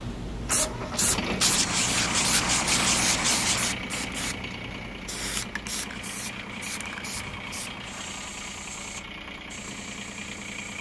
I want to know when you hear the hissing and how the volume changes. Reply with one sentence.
The hissing can be heard from 0.0 to 10.7 s, getting quieter.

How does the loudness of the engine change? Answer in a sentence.
The loudness of the engine goes down.